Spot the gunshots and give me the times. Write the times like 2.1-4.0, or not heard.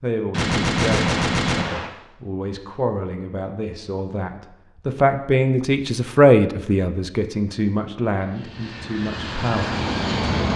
0.3-1.9.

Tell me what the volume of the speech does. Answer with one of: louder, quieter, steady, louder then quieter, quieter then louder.
louder then quieter.